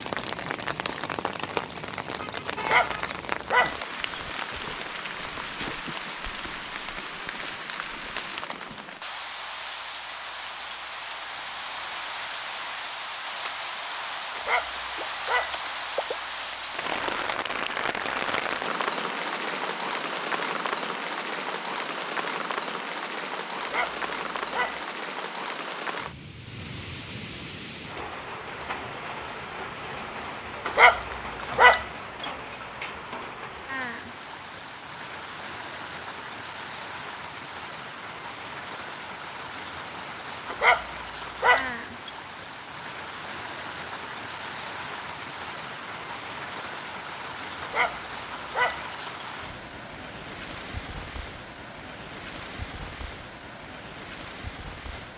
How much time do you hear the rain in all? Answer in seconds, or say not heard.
55 s.